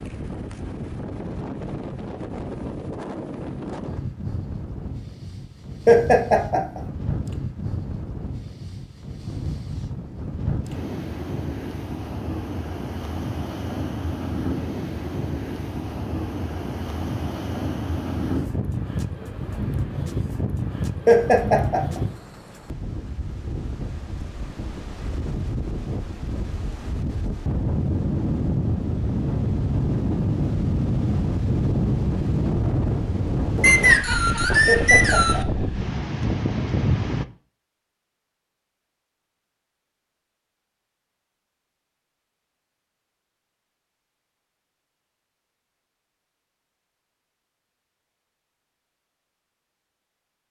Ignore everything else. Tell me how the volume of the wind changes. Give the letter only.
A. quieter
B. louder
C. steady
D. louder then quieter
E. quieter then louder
B.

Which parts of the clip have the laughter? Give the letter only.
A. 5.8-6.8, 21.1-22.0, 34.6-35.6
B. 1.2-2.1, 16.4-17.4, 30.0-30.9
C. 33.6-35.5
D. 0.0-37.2
A.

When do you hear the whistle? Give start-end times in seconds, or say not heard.
33.6-35.5.